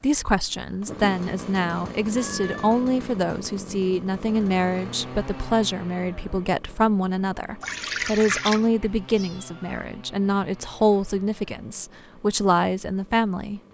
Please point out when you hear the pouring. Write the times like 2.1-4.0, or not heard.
7.6-8.7.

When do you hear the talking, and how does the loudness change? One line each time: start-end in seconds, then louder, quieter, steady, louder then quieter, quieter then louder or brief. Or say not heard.
0.0-13.6 steady.